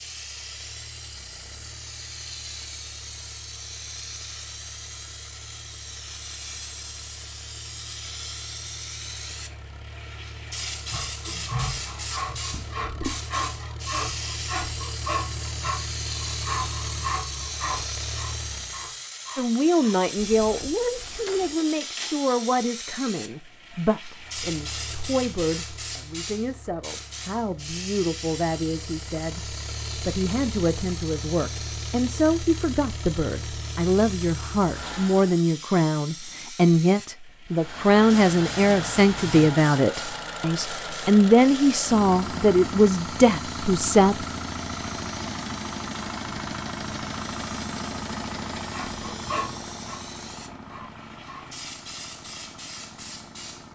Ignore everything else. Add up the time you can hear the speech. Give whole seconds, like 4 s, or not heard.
25 s.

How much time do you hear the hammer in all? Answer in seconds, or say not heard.
not heard.